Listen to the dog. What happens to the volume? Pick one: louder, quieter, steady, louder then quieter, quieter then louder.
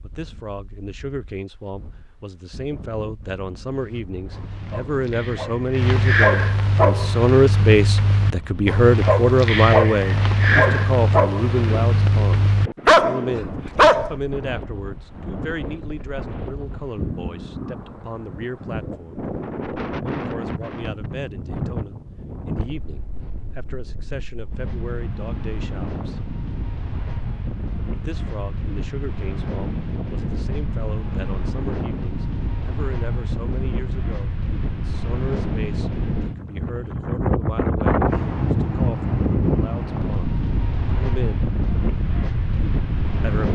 louder.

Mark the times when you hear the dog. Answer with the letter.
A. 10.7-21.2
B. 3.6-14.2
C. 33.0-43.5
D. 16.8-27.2
B.